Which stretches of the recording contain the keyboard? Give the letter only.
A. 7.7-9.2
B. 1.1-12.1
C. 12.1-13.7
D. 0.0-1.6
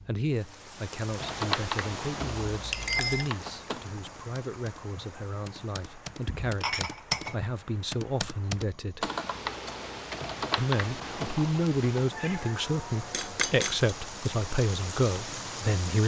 B.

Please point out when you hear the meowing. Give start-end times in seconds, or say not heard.
12.1-13.7.